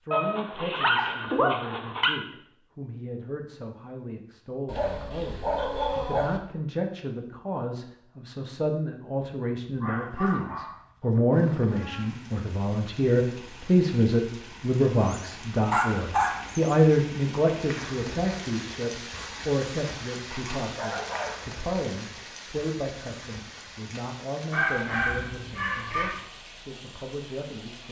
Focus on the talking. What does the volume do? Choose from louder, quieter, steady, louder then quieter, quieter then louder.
louder then quieter.